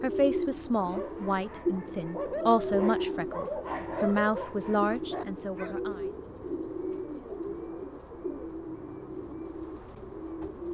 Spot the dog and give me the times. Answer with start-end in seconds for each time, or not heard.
0.8-5.8.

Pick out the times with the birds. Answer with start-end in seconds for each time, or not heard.
0.0-10.7.